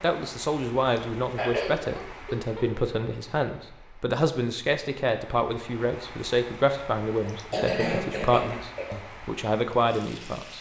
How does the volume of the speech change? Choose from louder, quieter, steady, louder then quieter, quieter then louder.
steady.